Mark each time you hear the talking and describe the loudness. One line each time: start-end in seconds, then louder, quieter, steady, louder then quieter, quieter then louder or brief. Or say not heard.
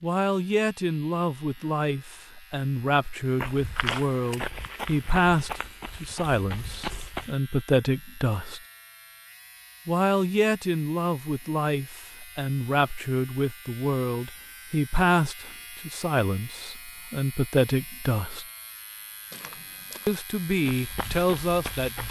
0.0-8.6 steady
9.8-18.4 steady
20.1-22.0 brief.